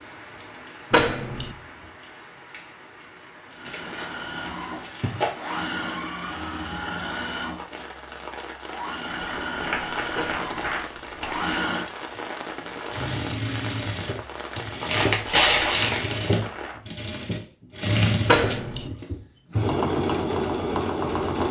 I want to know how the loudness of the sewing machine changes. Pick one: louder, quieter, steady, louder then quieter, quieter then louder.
louder.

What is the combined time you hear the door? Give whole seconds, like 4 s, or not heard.
2 s.